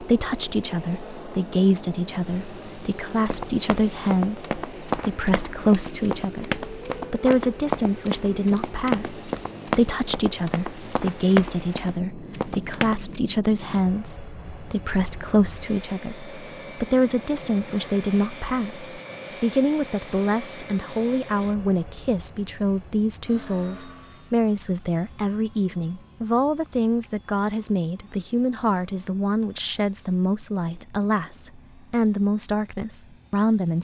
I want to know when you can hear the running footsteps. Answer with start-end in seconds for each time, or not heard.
3.1-13.2.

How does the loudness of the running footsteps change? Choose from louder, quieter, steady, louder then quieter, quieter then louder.
steady.